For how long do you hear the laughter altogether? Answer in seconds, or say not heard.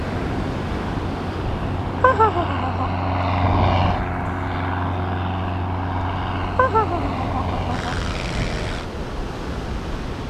2 s.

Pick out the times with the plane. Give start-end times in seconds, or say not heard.
0.0-8.9.